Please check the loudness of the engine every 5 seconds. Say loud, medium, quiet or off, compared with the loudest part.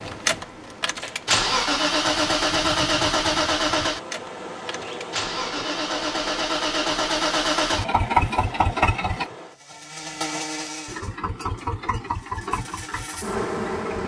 loud, loud, medium.